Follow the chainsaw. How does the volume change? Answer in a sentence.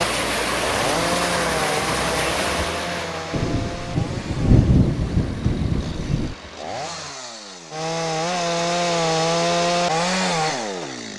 The volume of the chainsaw goes down, then up.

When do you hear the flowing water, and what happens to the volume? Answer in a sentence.
You can hear the flowing water from 0.0 to 7.2 s, getting quieter.